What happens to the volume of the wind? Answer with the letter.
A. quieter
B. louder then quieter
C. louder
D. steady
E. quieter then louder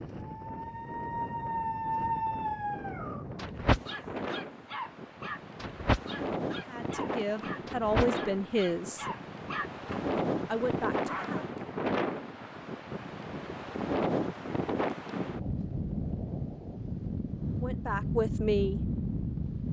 C.